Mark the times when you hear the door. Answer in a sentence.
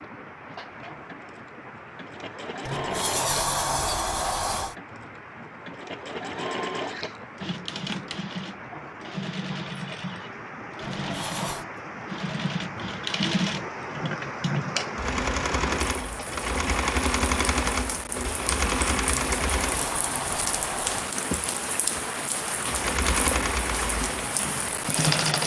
The door can be heard from 2.6 to 4.8 s, from 10.8 to 11.7 s and from 19.1 to 21.1 s.